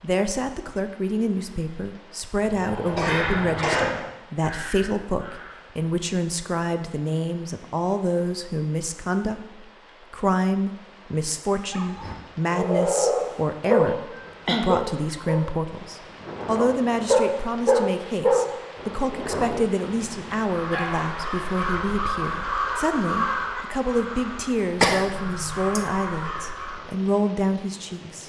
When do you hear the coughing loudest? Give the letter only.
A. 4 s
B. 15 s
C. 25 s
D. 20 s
C.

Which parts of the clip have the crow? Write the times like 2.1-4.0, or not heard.
2.4-5.6, 20.4-26.9.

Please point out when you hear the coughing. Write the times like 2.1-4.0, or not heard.
2.9-4.0, 13.7-15.2, 24.8-25.9.